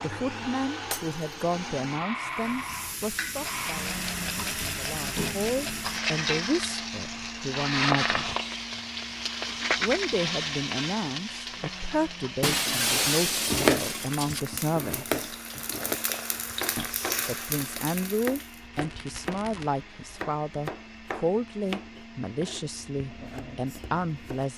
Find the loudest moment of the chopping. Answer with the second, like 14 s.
14 s.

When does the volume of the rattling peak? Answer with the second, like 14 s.
10 s.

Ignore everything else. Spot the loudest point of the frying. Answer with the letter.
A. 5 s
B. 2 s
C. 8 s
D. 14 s
C.